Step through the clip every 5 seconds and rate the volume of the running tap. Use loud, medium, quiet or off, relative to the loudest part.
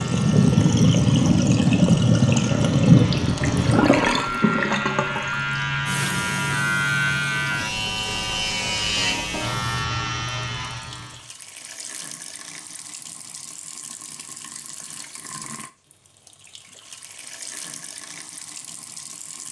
loud, quiet, quiet, quiet.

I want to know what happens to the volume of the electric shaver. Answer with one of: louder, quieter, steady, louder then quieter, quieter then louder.
louder.